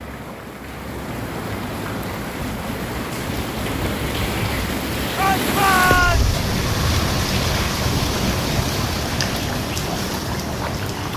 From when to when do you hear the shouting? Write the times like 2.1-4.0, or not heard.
5.2-6.3.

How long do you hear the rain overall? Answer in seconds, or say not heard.
11 s.